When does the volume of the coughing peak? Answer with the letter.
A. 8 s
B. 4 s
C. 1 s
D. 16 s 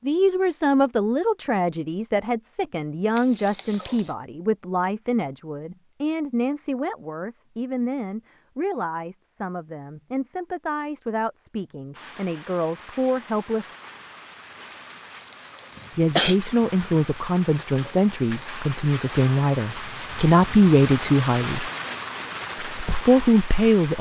D.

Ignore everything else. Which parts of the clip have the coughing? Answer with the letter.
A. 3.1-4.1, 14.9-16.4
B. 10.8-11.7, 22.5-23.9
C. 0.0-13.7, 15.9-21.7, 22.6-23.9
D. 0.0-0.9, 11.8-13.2
A.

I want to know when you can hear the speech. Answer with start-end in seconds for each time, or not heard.
0.0-13.7, 15.9-21.7, 22.6-23.9.